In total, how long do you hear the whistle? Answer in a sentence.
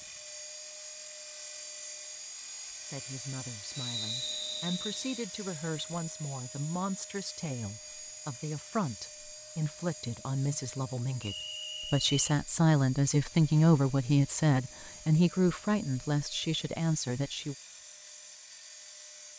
You can hear the whistle for 3 seconds altogether.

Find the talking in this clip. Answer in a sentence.
The talking can be heard from 2.9 to 17.6 s.